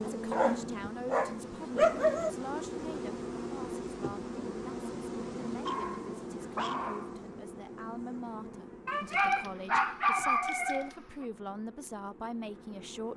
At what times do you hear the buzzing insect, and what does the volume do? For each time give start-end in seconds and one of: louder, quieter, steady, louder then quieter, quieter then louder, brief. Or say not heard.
0.0-13.1 quieter.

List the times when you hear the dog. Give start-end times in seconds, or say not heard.
0.3-2.3, 5.7-7.2, 8.8-10.9.